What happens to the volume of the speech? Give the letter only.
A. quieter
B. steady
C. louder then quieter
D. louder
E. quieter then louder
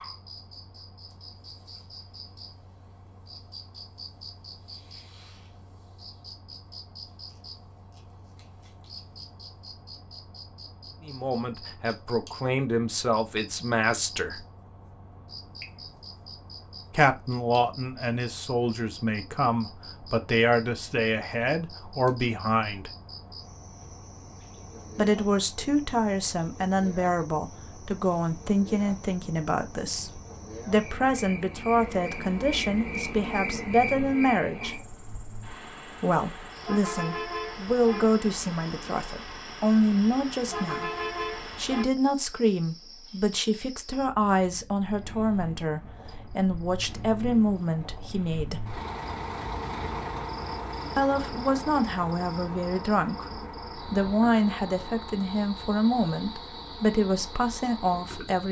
B.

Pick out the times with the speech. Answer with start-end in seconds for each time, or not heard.
11.1-14.4, 16.9-22.9, 24.9-34.8, 36.0-40.9, 41.5-48.6, 51.0-58.4.